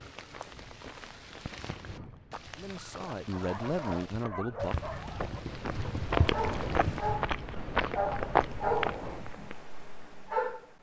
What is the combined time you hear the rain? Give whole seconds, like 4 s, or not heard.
7 s.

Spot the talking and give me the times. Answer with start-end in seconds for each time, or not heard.
2.5-4.8.